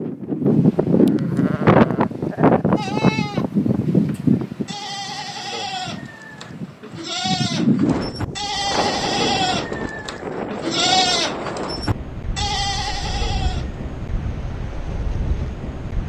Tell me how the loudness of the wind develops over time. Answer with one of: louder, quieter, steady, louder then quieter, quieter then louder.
quieter.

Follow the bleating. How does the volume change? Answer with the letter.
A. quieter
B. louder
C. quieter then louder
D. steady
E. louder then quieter
B.